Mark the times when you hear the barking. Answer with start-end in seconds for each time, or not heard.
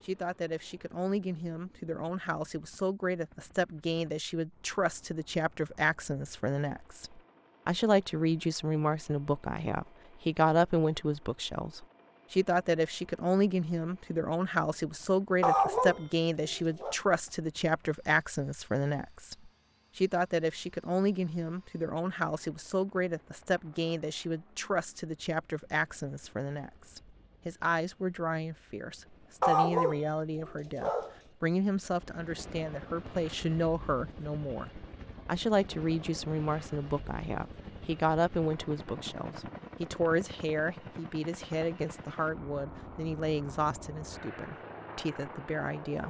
15.4-16.9, 29.4-31.1.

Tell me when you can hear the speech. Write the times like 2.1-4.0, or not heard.
0.1-46.0.